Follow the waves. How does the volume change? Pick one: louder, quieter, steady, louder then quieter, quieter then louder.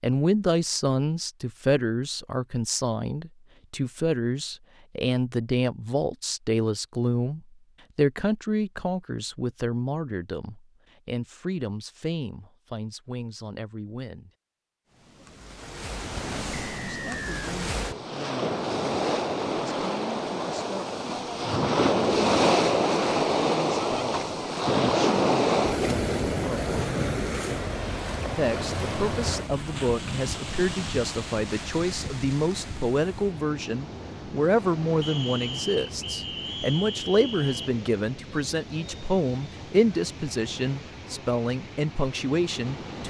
louder then quieter.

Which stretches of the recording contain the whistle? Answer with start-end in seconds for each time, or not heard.
16.6-17.6, 35.0-37.7.